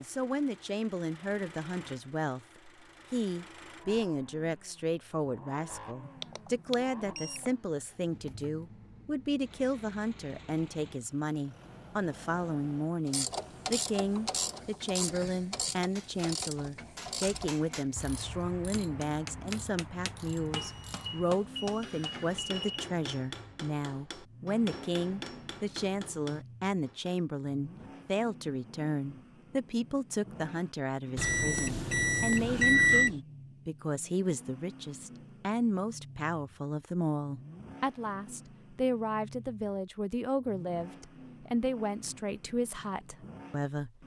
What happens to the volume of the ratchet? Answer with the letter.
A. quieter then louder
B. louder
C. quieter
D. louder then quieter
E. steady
C.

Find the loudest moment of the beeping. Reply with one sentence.
The volume of the beeping peaks at 33 seconds.